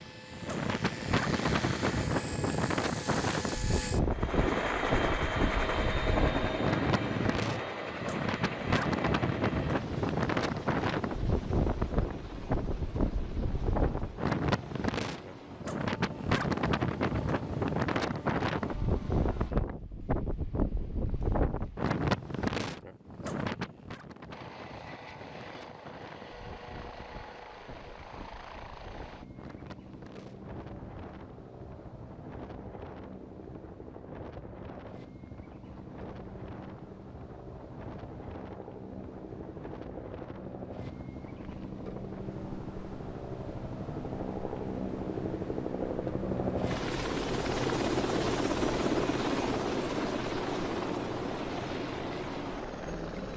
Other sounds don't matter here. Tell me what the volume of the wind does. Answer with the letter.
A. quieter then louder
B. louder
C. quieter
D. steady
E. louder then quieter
C.